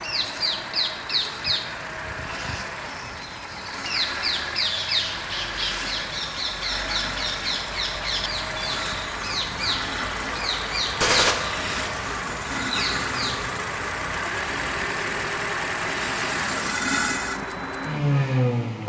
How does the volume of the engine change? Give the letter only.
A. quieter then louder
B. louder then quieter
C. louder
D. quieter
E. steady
C.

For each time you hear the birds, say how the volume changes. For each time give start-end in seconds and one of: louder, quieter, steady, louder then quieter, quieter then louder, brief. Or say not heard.
0.0-13.5 steady.